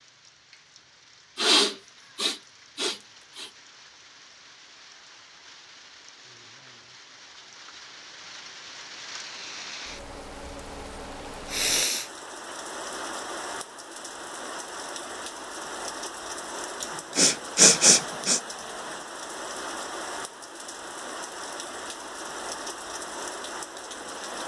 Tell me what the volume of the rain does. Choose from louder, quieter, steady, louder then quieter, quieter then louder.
louder.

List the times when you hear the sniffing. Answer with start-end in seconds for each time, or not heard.
1.4-3.5, 11.4-12.1, 16.8-18.4.